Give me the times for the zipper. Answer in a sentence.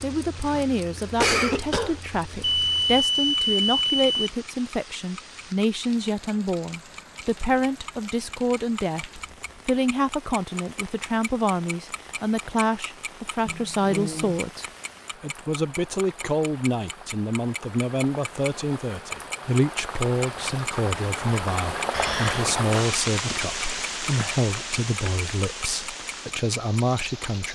You can't hear the zipper here.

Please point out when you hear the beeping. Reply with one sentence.
You can hear the beeping from 2.4 to 4.3 s.